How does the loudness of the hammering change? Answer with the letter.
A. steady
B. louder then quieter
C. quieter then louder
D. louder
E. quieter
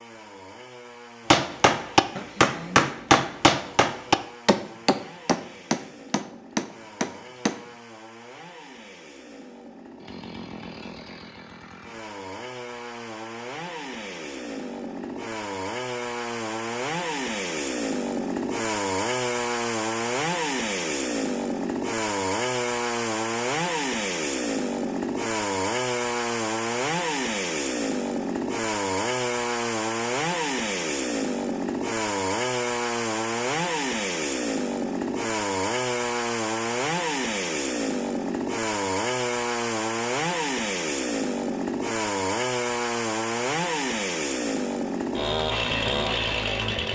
E.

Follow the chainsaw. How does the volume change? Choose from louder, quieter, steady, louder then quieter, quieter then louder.
louder.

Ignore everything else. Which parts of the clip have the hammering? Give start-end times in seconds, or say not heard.
1.3-7.7.